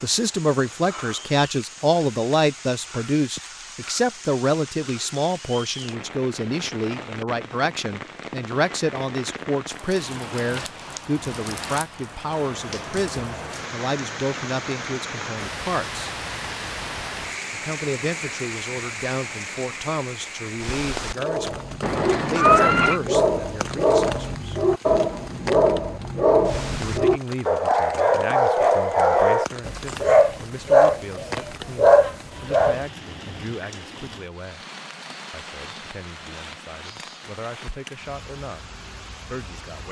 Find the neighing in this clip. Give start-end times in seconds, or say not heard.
21.8-23.0.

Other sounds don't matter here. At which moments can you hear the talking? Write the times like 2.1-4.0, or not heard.
0.0-16.1, 17.5-24.6, 26.8-34.6, 35.3-38.6, 39.2-39.8.